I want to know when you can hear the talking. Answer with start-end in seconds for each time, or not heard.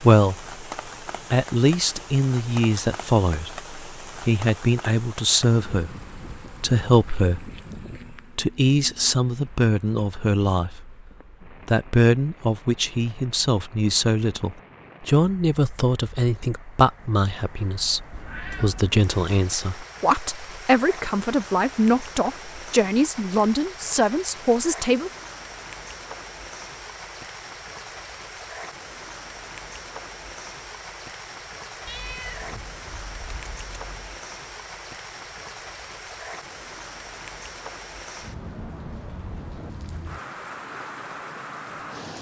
0.0-0.5, 1.3-10.9, 11.7-25.1.